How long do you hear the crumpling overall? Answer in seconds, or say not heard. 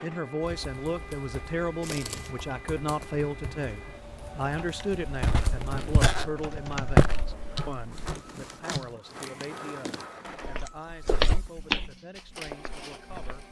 3 s.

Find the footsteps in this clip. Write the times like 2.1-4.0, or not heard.
5.0-8.2, 10.2-13.4.